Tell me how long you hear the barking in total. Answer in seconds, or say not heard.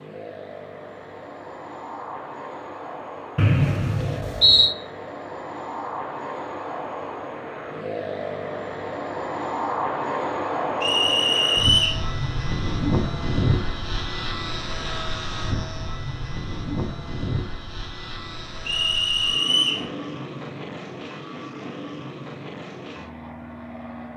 not heard.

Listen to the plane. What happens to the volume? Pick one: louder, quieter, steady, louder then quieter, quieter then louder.
louder then quieter.